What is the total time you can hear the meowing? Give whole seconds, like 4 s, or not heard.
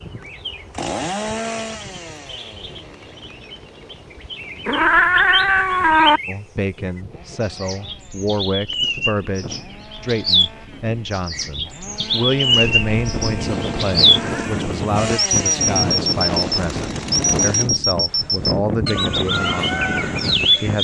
2 s.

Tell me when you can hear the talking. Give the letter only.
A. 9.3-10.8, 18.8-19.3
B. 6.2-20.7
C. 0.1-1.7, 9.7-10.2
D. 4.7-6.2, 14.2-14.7
B.